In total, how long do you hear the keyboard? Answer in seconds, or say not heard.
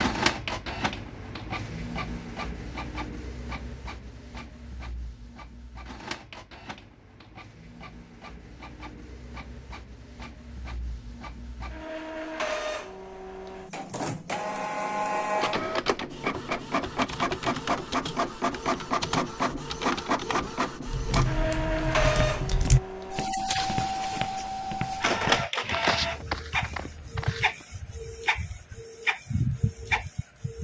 6 s.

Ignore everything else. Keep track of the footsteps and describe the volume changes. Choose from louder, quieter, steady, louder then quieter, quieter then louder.
louder then quieter.